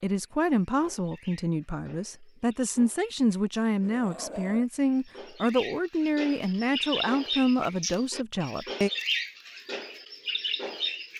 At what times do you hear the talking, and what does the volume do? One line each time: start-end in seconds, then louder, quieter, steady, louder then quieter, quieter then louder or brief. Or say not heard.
0.0-8.9 steady.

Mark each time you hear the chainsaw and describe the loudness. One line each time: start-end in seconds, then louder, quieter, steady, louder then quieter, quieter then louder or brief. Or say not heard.
not heard.